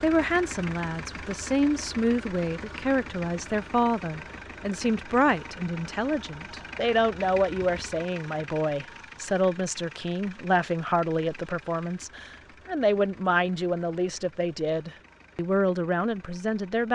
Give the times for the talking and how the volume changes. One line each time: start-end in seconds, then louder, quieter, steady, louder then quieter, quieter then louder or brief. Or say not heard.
0.0-16.9 steady.